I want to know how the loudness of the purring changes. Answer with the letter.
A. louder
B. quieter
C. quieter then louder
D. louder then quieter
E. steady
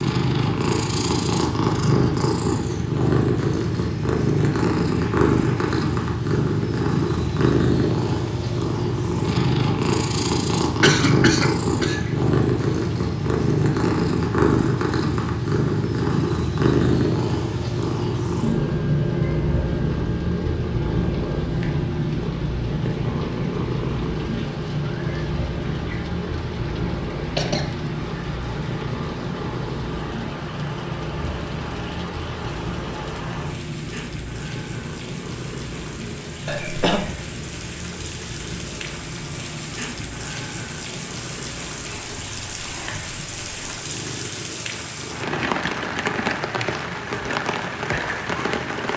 B.